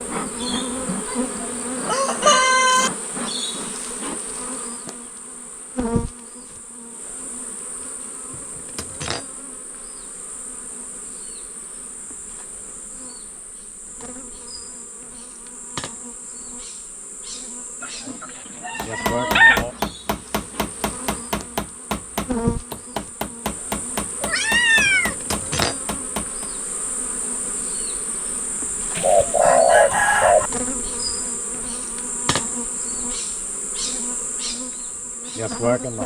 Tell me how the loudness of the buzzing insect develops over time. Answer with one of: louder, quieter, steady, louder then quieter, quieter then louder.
quieter then louder.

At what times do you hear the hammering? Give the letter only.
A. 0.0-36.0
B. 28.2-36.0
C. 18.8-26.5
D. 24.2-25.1
C.